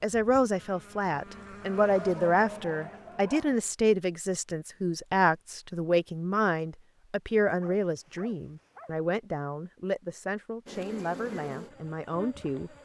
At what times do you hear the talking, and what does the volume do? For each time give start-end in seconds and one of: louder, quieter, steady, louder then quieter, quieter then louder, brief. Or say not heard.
0.0-12.7 quieter.